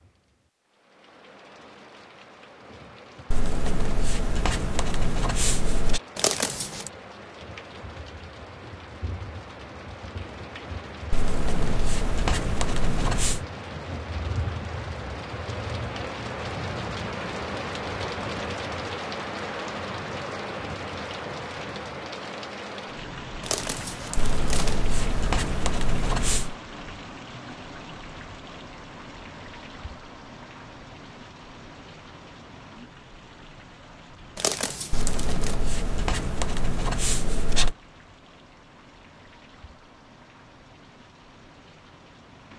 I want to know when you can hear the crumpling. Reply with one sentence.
The crumpling can be heard from 6.2 to 6.9 s, from 23.4 to 24.9 s and from 34.4 to 35.5 s.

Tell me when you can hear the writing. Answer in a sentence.
You can hear the writing from 3.3 to 6.0 s, from 11.1 to 13.4 s, from 24.1 to 26.6 s and from 34.9 to 37.8 s.